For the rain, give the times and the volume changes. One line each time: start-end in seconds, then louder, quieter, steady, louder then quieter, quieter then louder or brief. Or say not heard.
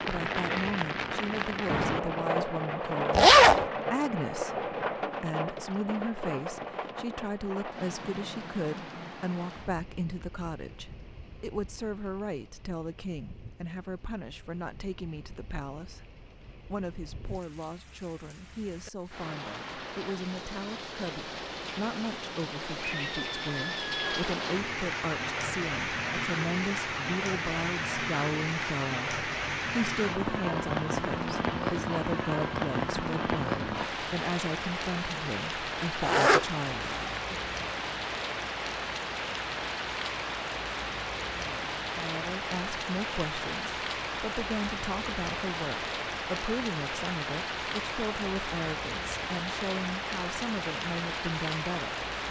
0.0-52.2 quieter then louder.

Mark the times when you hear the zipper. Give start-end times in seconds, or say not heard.
3.1-3.6, 36.0-37.2.